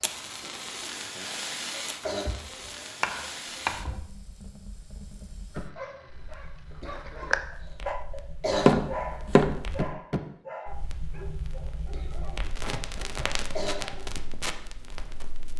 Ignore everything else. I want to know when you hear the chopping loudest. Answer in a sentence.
The volume of the chopping peaks at 9 seconds.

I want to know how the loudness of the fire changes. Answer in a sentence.
The volume of the fire goes down, then up.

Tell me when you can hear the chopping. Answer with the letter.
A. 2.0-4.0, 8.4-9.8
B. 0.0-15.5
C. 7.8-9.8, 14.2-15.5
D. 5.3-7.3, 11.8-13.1
A.